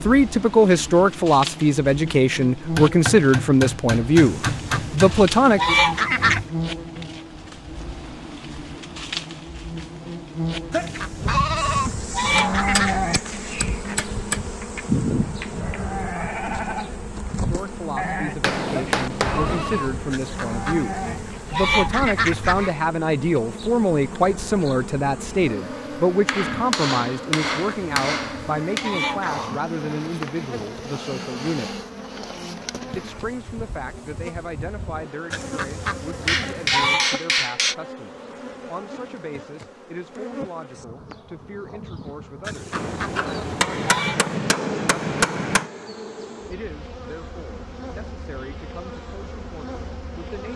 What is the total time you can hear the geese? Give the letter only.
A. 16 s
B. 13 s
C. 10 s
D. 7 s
B.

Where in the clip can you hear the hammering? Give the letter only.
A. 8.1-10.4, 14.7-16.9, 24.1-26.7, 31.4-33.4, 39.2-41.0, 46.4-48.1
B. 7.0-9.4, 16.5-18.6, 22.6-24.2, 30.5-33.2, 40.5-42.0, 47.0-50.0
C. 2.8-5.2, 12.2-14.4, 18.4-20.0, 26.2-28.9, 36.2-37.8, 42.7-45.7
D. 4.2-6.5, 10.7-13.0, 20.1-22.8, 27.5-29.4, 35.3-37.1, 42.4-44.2
C.